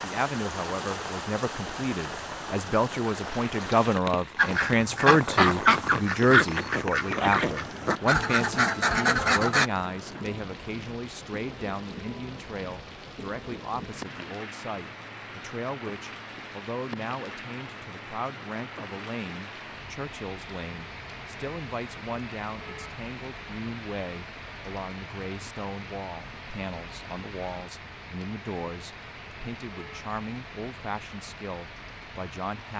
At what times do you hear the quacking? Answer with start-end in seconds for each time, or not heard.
4.3-9.7.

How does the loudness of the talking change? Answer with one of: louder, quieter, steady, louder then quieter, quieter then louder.
quieter.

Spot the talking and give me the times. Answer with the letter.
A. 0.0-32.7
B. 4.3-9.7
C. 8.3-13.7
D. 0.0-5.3
A.